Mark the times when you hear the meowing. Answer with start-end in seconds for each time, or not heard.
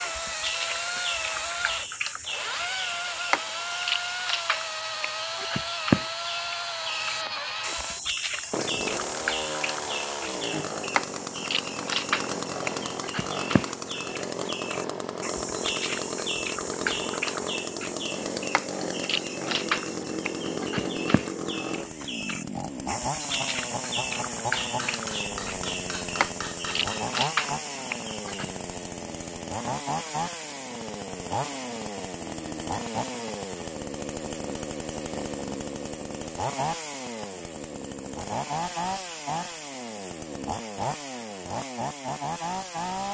not heard.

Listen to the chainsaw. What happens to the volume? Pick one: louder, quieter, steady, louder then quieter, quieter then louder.
steady.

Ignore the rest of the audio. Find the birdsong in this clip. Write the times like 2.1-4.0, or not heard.
0.0-28.5.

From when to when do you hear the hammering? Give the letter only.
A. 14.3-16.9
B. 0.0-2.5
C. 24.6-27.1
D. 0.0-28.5
C.